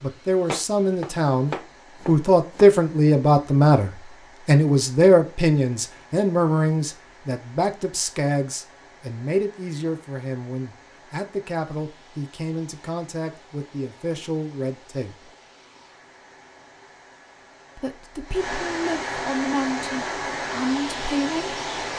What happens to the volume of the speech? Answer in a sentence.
The loudness of the speech goes down.